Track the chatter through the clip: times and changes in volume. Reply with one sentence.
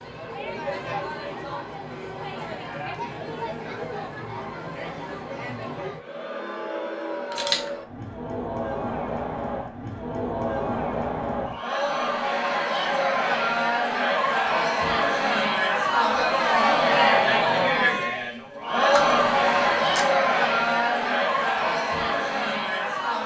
The chatter can be heard from 0.0 to 23.2 s, getting louder.